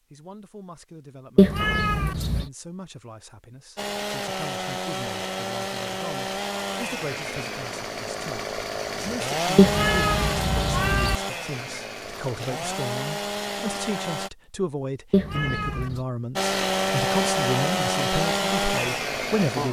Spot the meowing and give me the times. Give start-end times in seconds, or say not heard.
1.4-2.5, 9.6-11.2, 15.1-16.0.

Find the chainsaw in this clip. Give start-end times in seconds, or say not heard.
3.8-14.3, 16.4-19.6.